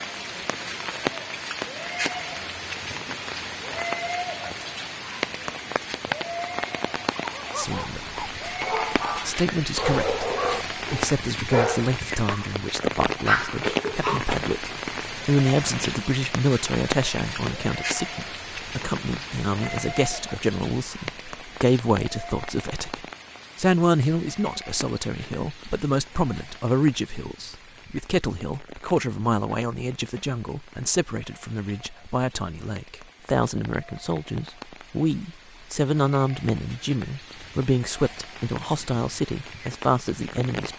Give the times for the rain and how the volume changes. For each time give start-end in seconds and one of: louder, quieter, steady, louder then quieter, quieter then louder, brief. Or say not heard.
0.0-40.7 quieter.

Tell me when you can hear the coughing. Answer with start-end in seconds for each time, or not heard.
13.4-14.2.